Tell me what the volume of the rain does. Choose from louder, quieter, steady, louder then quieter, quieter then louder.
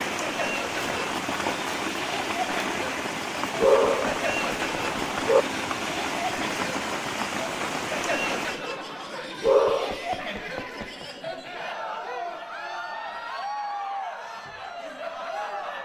steady.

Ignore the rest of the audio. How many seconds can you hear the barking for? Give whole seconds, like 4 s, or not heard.
3 s.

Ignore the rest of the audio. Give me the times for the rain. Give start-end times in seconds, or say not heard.
0.0-8.6.